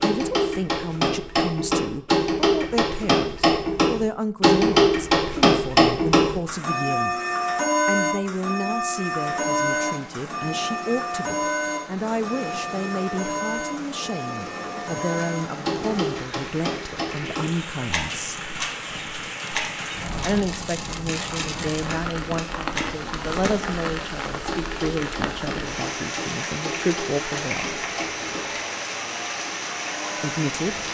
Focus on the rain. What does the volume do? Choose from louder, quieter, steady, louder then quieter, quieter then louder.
louder.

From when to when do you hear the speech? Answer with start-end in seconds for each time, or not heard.
0.0-7.2, 7.8-18.5, 20.2-27.8, 30.2-30.9.